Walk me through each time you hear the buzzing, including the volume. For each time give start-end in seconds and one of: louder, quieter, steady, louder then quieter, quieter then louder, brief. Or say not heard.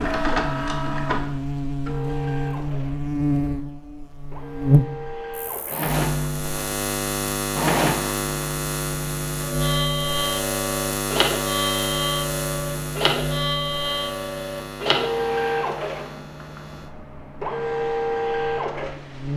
0.0-19.3 quieter.